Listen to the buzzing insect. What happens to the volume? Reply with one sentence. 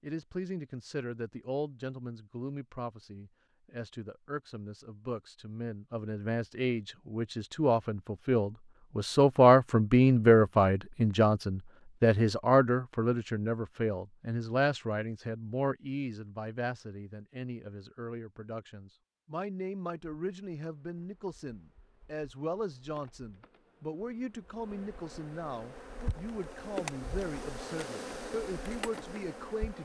The loudness of the buzzing insect goes up.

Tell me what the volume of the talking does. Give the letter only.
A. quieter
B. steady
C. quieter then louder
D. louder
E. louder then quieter
E.